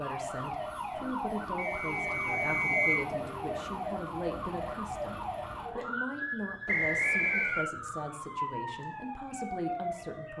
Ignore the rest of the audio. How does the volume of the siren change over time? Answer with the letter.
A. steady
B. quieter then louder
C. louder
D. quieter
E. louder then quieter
A.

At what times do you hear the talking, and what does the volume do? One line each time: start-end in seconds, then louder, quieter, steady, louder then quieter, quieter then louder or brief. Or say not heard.
0.0-10.3 steady.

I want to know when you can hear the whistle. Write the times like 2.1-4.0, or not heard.
1.6-3.0, 6.7-7.7.